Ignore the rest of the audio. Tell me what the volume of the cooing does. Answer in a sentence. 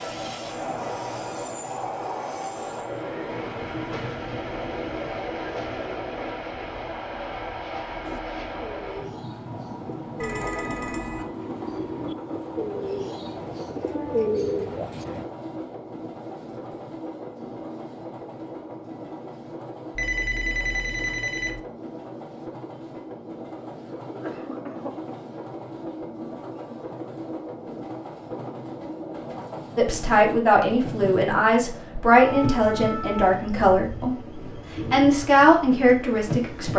The volume of the cooing goes up.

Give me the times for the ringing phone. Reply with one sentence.
The ringing phone can be heard from 10.2 to 11.2 s and from 19.9 to 21.6 s.